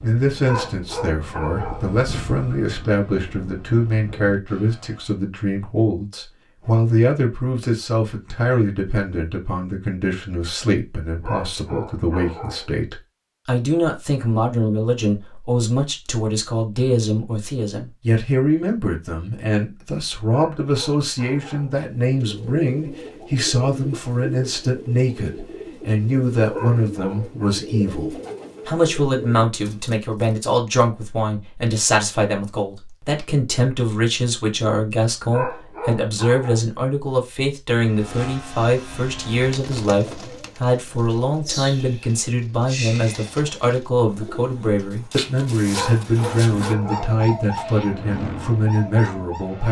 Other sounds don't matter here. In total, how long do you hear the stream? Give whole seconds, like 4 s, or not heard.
not heard.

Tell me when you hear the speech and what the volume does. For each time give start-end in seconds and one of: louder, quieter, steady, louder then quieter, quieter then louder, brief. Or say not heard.
0.0-49.6 steady.